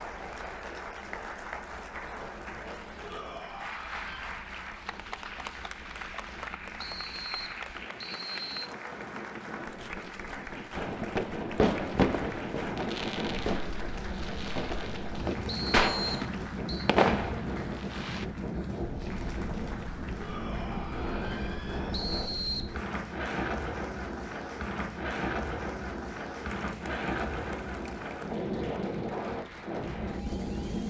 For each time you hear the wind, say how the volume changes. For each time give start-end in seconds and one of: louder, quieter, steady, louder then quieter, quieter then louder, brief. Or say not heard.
0.0-30.8 louder.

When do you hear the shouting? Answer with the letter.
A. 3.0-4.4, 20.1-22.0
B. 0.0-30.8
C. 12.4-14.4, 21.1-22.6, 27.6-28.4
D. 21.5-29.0
A.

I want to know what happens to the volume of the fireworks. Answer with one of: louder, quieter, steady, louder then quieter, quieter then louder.
quieter then louder.